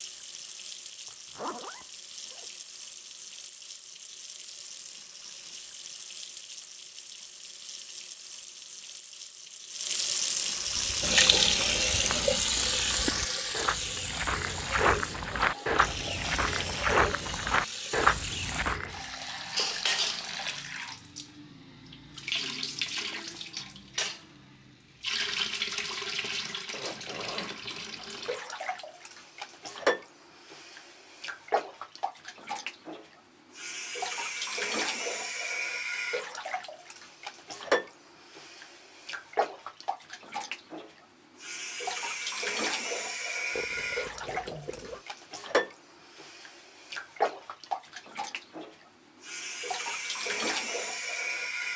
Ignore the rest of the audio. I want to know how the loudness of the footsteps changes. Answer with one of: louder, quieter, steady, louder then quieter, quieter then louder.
louder.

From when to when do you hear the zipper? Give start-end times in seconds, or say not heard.
1.1-2.5, 26.7-28.4, 43.5-45.0.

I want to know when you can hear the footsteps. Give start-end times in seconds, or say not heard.
10.6-19.1.